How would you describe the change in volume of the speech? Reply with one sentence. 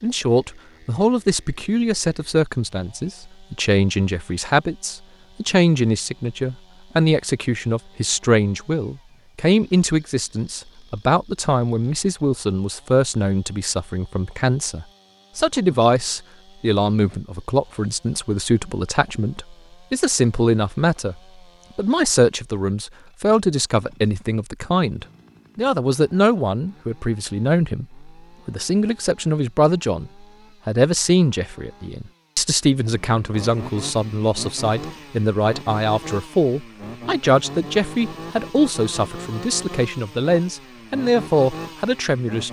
The volume of the speech stays about the same.